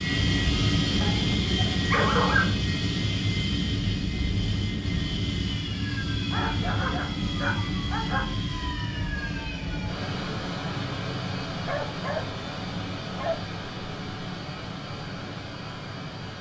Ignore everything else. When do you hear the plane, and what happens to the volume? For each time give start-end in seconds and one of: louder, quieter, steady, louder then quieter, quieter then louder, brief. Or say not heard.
0.0-16.3 quieter.